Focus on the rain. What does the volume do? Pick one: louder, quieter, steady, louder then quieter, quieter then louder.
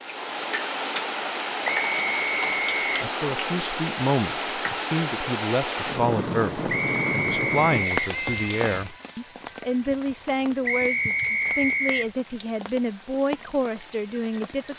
quieter.